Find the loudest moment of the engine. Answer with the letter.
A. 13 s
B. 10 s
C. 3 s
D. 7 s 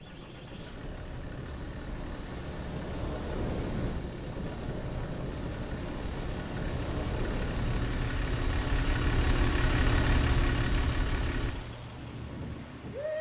B.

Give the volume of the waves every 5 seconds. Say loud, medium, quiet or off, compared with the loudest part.
loud, loud, medium.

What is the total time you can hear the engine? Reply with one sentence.
The engine can be heard for 13 seconds in total.